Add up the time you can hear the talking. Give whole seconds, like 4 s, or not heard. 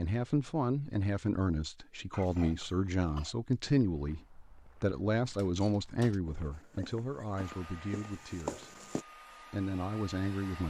10 s.